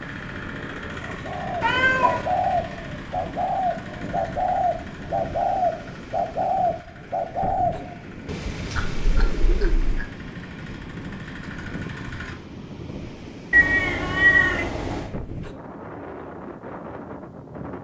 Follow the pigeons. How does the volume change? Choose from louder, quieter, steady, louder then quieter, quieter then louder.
quieter.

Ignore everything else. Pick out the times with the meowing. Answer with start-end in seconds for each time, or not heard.
1.6-2.2, 8.8-10.1, 13.5-15.1.